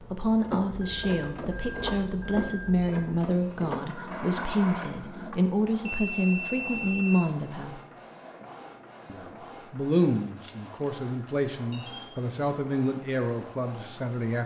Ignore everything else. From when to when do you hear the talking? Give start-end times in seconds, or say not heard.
0.0-7.8, 9.1-14.4.